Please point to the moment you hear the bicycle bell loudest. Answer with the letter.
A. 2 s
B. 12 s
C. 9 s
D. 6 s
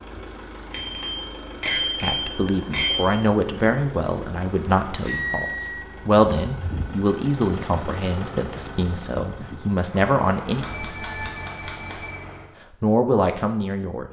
A.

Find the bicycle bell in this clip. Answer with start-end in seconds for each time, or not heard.
0.7-3.1, 5.0-5.8, 10.6-12.1.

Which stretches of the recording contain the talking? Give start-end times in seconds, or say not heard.
2.0-10.7, 12.8-14.0.